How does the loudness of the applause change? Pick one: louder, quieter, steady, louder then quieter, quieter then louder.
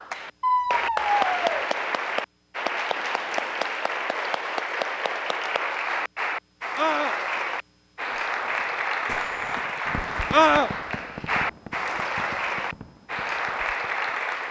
steady.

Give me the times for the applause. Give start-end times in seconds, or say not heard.
0.0-14.4.